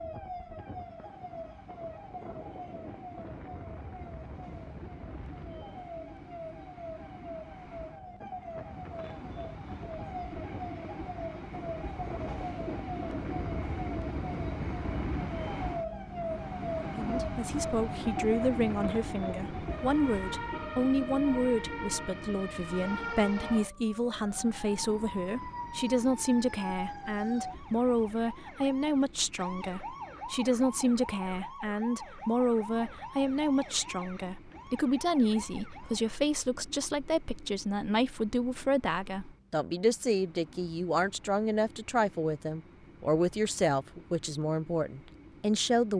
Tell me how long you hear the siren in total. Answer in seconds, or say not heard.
36 s.